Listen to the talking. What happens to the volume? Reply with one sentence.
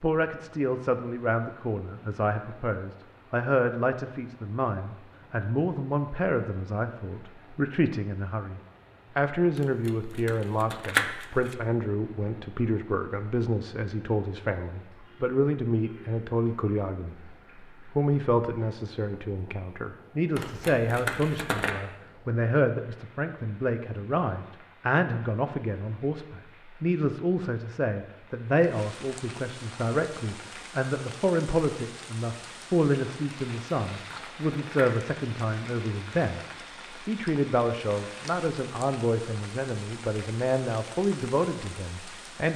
The loudness of the talking stays about the same.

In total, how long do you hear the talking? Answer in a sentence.
You can hear the talking for 42 seconds altogether.